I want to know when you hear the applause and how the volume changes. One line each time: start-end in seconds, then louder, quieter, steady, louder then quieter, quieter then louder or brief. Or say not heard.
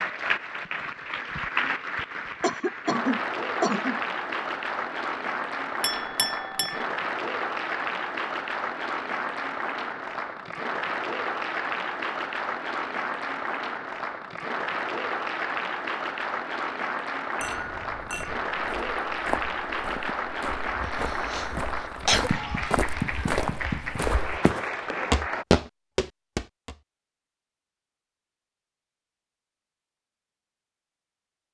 0.0-25.4 steady.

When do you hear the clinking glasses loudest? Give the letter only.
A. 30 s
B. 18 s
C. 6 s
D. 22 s
C.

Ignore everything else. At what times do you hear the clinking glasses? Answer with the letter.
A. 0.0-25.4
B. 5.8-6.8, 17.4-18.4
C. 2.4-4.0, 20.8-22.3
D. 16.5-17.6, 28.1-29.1
B.